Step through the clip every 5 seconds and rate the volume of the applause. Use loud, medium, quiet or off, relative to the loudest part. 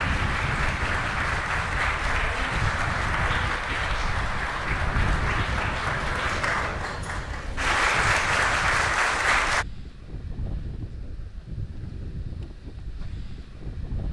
loud, loud, off.